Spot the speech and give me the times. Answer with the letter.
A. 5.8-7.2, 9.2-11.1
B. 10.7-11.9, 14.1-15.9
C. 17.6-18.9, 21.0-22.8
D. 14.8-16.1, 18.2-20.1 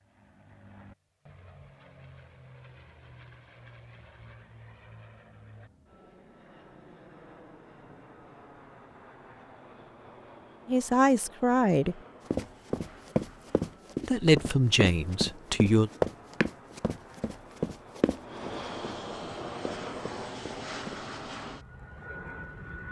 B.